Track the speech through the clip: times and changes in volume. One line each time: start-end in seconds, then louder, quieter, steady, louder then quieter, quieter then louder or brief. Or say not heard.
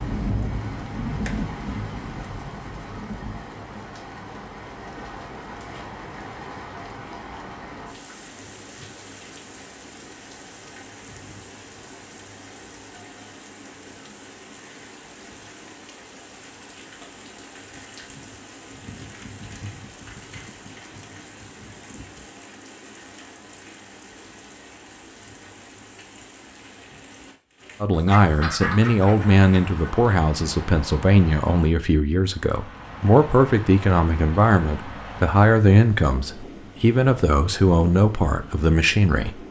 27.8-39.4 steady.